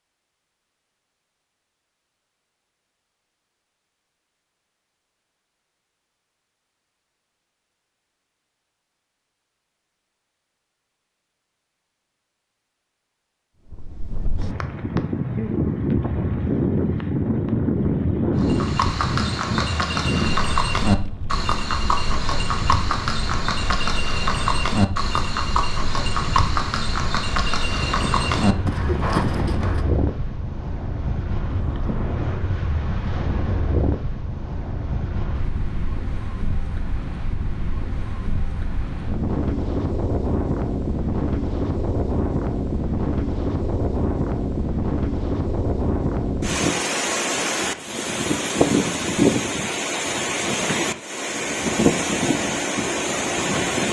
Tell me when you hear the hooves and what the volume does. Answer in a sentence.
You can hear the hooves from 18.4 to 29.8 s, at a steady volume.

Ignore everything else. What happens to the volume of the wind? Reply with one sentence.
The loudness of the wind goes down, then up.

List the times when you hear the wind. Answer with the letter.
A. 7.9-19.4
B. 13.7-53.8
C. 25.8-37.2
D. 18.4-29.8
B.